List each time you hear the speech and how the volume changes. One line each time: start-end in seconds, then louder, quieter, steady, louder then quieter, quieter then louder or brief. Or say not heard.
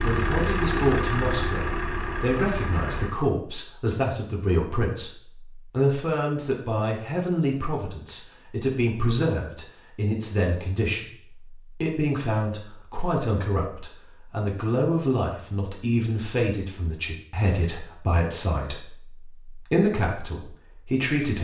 0.0-21.3 steady.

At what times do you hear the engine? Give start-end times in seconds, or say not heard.
0.0-3.1.